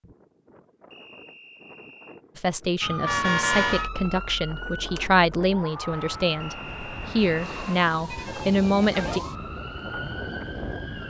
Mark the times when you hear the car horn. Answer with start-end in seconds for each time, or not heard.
3.0-3.9, 8.1-9.2.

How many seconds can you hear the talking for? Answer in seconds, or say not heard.
7 s.